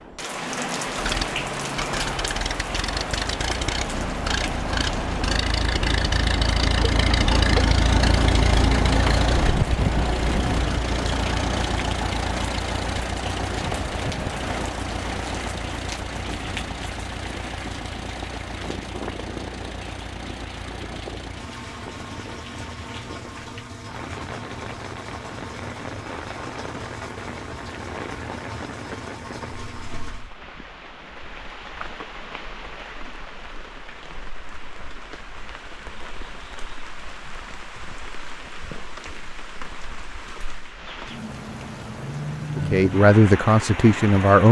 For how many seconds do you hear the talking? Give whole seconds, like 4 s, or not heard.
2 s.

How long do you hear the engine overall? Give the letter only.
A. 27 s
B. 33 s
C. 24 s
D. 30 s
D.